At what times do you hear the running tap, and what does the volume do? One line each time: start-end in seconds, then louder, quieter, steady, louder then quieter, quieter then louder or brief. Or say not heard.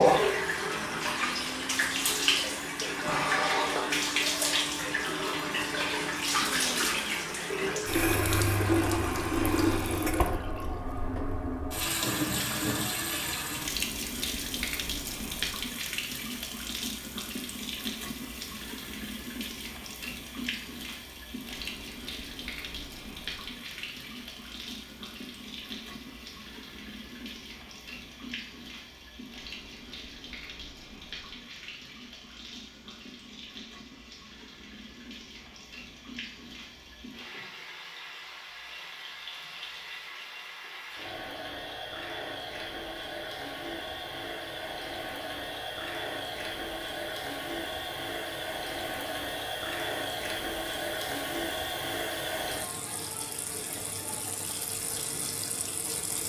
0.0-56.2 quieter then louder.